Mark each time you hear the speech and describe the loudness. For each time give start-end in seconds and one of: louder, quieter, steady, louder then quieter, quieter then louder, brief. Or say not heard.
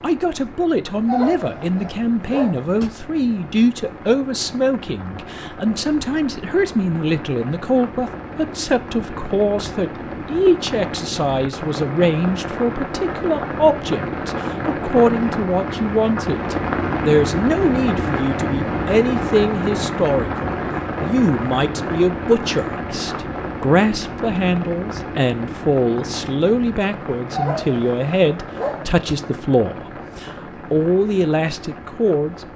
0.0-32.5 steady.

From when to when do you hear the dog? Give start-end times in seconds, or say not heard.
1.1-2.9, 27.3-29.1.